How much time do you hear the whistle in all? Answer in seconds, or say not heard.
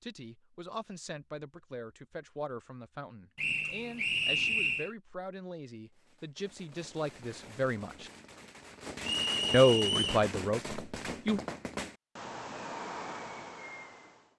3 s.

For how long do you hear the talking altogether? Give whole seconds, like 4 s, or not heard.
10 s.